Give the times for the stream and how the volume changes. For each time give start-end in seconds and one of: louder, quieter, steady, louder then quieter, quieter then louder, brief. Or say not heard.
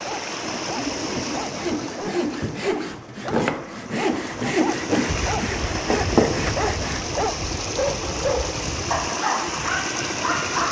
0.0-10.6 quieter then louder.